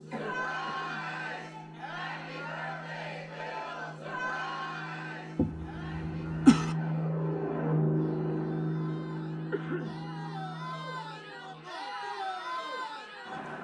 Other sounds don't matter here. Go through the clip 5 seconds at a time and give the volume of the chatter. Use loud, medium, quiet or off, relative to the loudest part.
loud, quiet, loud.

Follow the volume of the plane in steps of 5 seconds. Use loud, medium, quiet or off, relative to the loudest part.
quiet, loud, quiet.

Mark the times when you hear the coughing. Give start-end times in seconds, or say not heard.
0.1-0.9, 5.3-6.8, 9.5-10.1.